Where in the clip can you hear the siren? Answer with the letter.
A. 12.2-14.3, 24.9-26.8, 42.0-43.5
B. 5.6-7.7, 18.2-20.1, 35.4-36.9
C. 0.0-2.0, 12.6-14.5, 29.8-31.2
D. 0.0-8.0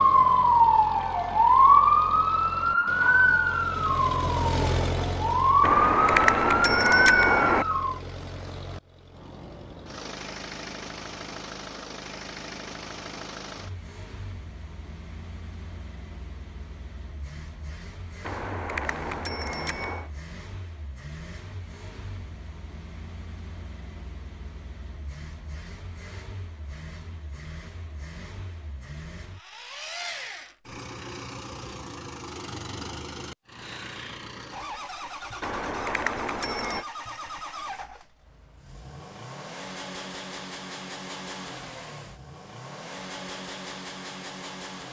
D.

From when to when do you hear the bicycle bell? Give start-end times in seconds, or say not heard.
5.6-7.7, 18.2-20.1, 35.4-36.9.